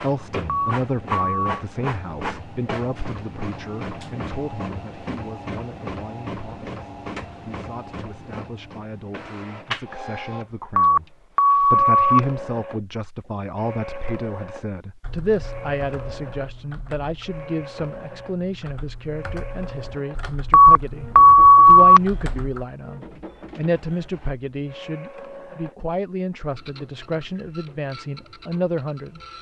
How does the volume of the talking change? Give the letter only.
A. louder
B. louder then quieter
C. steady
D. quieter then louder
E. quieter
D.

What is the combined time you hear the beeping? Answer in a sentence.
You can hear the beeping for 4 seconds altogether.